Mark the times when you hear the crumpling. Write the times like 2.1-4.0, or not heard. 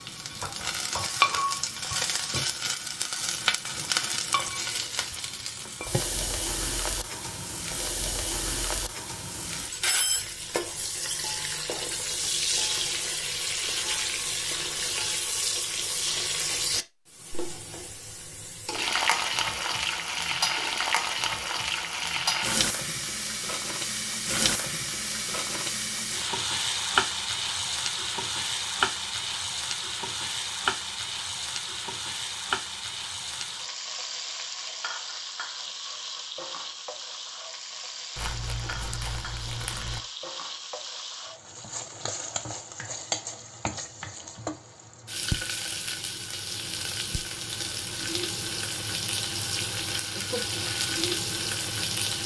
38.1-40.0.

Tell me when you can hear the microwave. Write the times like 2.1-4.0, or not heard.
not heard.